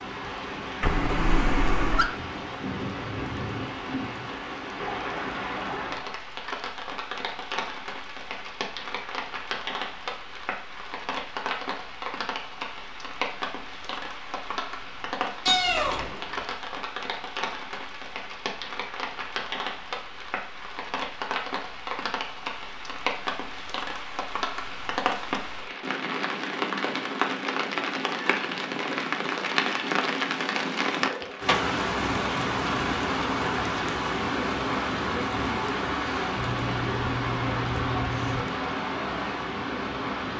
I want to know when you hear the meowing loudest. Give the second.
16 s.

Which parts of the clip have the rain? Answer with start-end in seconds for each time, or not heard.
0.0-40.3.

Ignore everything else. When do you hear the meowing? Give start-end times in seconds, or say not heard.
0.8-2.1, 15.4-16.4, 36.4-38.4.